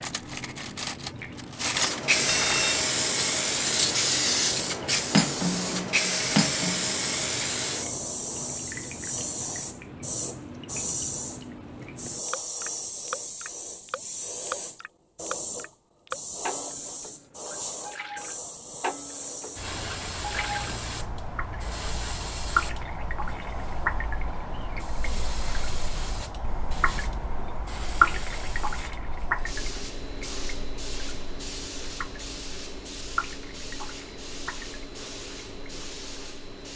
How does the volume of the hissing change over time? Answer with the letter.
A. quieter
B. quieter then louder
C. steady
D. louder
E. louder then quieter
A.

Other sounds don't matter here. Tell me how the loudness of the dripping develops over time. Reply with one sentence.
The volume of the dripping goes up, then down.